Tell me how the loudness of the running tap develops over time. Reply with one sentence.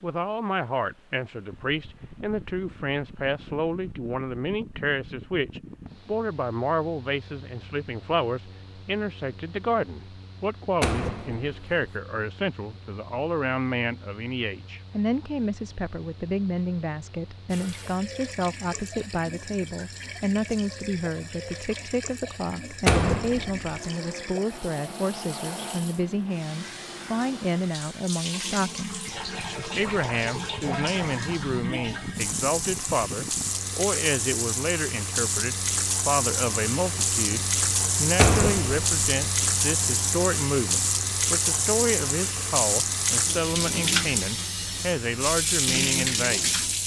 The loudness of the running tap goes up.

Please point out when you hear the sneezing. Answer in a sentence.
You can't hear the sneezing here.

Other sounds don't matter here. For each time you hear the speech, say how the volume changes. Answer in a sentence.
The speech can be heard from 0.0 to 29.1 s, at a steady volume; and from 29.8 to 46.5 s, at a steady volume.